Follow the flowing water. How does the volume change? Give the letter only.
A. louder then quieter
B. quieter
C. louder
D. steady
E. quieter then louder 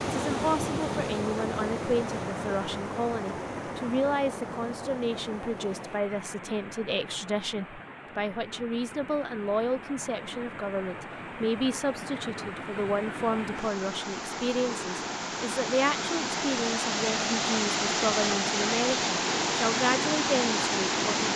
E.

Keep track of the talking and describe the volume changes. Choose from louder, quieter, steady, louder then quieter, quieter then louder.
steady.